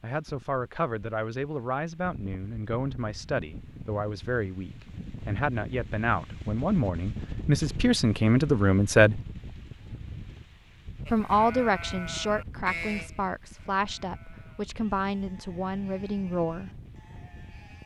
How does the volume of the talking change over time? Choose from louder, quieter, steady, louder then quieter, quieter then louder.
louder then quieter.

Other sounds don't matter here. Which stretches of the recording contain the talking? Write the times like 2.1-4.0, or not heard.
0.0-9.2, 11.1-16.7.